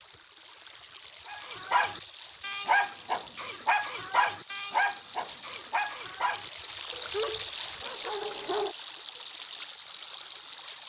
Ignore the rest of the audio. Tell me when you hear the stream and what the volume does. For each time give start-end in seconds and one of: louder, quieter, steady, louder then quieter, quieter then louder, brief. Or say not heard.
0.0-10.8 louder.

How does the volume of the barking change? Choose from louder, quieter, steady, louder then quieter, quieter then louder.
quieter.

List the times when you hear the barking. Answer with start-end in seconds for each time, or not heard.
1.2-8.8.